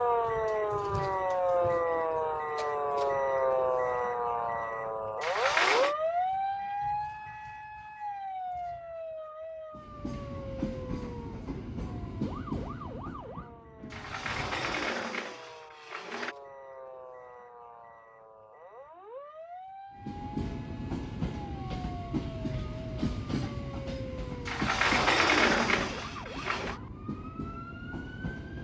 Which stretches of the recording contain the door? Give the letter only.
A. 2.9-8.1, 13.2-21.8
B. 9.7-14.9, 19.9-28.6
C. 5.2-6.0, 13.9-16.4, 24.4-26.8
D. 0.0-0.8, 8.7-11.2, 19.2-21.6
C.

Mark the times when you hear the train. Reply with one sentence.
You can hear the train from 9.7 to 14.9 s and from 19.9 to 28.6 s.